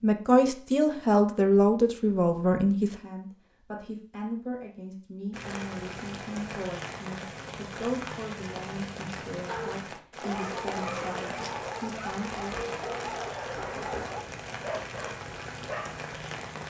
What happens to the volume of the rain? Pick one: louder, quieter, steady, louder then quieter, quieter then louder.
steady.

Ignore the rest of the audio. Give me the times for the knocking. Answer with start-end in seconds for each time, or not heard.
13.6-14.2.